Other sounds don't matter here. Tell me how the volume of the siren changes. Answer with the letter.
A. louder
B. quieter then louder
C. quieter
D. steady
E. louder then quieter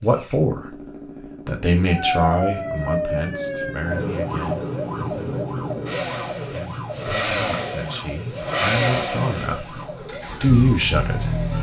C.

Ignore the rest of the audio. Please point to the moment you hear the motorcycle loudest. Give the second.
9 s.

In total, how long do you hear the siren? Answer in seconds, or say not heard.
10 s.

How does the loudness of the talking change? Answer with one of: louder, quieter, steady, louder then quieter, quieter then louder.
quieter then louder.